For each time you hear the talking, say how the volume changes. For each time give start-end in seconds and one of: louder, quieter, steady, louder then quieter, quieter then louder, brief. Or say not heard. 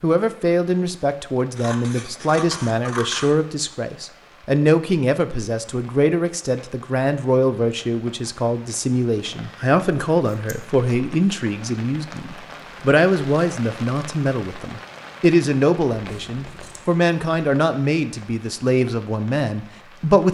0.0-20.3 steady.